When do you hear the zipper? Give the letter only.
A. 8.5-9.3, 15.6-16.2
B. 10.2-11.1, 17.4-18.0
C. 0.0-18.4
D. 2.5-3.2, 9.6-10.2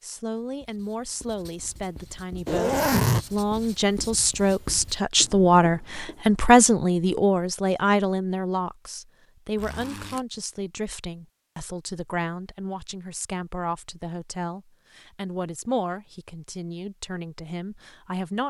D.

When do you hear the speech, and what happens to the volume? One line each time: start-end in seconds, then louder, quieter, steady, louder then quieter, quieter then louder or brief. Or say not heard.
0.0-18.4 louder then quieter.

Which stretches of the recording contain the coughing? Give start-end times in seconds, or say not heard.
not heard.